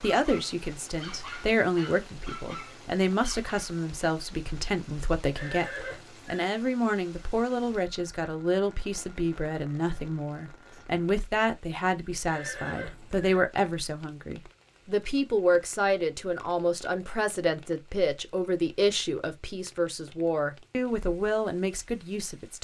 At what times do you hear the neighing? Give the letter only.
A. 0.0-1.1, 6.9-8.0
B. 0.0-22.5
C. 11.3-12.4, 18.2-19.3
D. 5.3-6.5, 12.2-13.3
D.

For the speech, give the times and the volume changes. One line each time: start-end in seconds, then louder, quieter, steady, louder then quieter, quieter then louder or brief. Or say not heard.
0.0-22.5 steady.